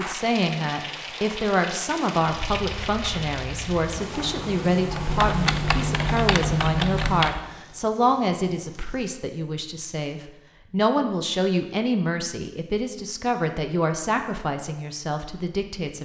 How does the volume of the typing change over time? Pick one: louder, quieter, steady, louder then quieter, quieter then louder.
louder.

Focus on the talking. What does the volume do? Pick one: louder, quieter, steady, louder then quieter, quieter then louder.
steady.